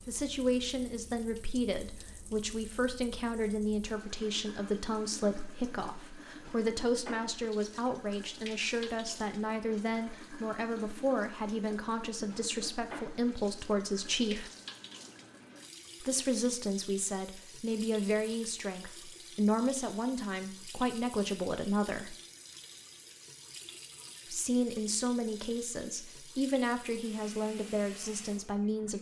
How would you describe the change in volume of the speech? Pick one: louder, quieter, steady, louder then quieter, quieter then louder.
steady.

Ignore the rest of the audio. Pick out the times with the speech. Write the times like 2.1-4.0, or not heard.
0.1-14.5, 16.0-22.1, 24.2-28.9.